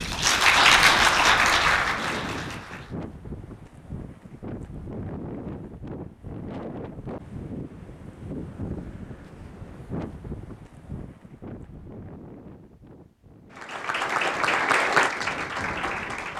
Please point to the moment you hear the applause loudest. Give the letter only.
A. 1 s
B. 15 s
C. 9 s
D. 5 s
A.